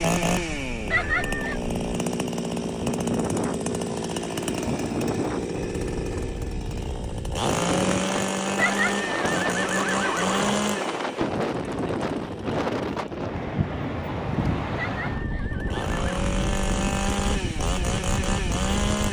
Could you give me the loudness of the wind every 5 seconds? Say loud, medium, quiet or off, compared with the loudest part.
medium, loud, loud, loud.